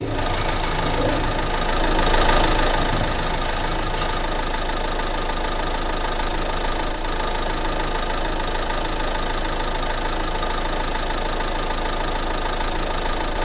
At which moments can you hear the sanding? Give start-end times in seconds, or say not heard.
0.0-4.2.